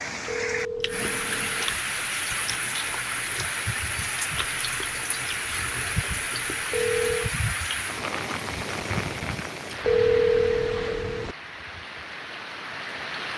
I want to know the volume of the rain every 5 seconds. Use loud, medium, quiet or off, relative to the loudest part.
loud, loud, medium.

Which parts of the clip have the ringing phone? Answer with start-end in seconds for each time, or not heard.
0.2-1.8, 6.7-7.3, 9.8-11.3.